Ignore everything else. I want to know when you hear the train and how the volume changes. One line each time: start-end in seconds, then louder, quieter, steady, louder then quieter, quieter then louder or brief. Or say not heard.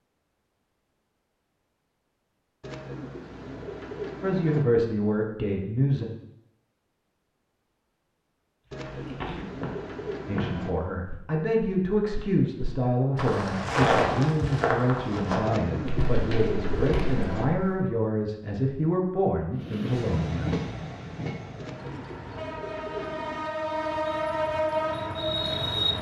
19.6-25.9 quieter then louder.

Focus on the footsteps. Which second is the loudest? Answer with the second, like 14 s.
14 s.